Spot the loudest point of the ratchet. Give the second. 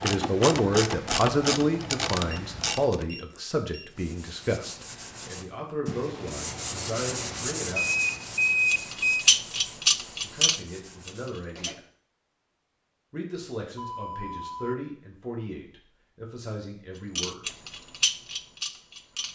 9 s.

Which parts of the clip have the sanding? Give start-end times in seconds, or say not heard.
3.9-11.8.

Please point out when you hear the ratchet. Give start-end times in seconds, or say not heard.
0.0-3.0, 8.7-11.8, 17.1-19.3.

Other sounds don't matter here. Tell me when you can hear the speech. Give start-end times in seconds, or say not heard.
0.0-7.8, 10.2-11.8, 13.1-17.4.